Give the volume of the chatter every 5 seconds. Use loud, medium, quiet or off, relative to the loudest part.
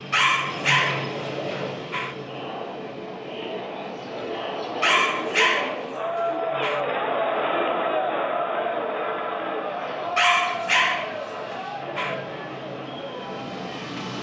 medium, loud, medium.